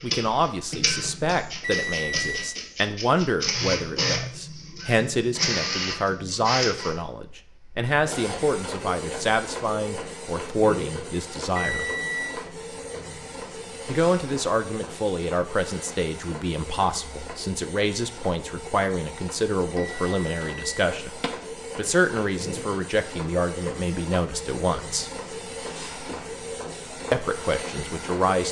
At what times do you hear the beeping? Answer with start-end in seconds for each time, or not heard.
1.6-2.6, 11.5-12.4, 19.8-21.3.